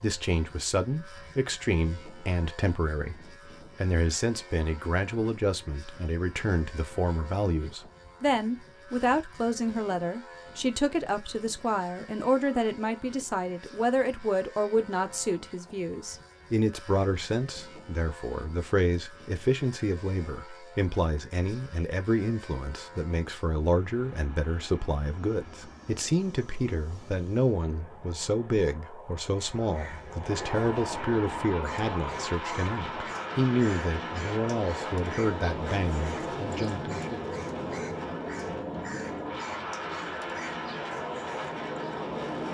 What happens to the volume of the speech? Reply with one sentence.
The volume of the speech stays about the same.